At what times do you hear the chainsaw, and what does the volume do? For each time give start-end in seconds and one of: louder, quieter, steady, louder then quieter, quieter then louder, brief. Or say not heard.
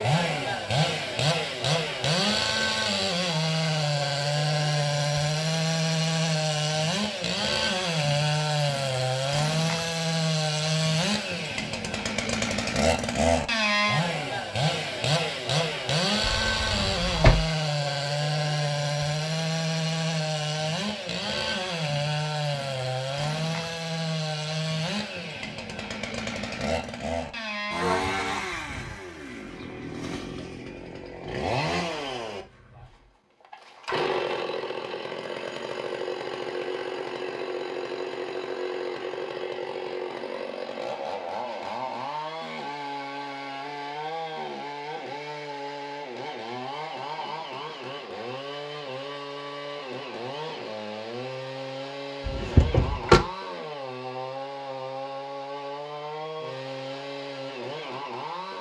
0.0-58.5 quieter.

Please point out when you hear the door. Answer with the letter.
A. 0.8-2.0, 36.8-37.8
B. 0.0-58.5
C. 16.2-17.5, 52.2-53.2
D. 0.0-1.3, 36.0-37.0
C.